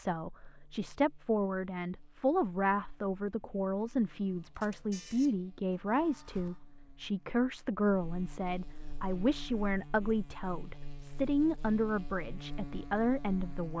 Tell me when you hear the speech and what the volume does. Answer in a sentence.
You can hear the speech from 0.0 to 13.7 s, at a steady volume.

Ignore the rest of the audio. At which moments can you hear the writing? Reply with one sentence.
The writing can't be heard in this clip.